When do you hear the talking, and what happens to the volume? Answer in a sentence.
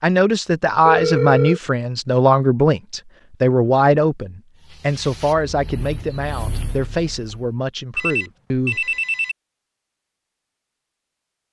You can hear the talking from 0.0 to 8.9 s, getting quieter.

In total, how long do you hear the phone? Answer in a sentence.
The phone can be heard for 2 seconds in total.